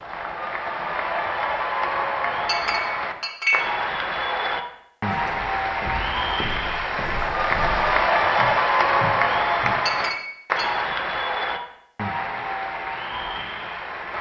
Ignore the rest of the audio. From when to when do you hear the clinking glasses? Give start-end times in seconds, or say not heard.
2.5-3.6, 9.8-10.7.